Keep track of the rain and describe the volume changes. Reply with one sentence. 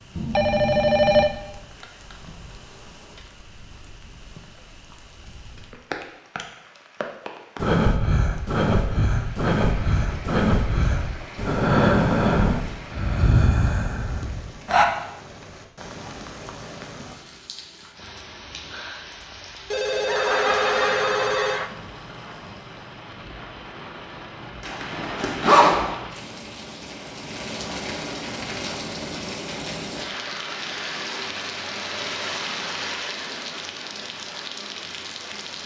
The volume of the rain goes up.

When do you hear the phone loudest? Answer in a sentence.
The volume of the phone peaks at 1 second.